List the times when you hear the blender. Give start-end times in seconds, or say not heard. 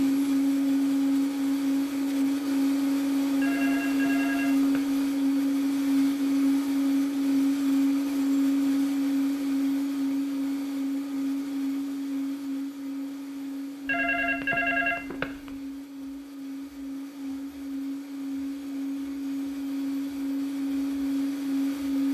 0.0-22.0.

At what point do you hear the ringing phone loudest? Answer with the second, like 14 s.
15 s.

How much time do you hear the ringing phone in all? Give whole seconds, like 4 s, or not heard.
3 s.